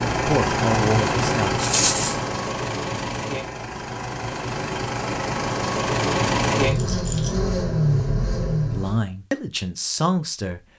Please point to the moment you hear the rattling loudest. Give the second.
2 s.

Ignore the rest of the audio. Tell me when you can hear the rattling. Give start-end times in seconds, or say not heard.
1.6-2.1, 6.8-7.3.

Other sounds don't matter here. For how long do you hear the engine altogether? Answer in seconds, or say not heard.
9 s.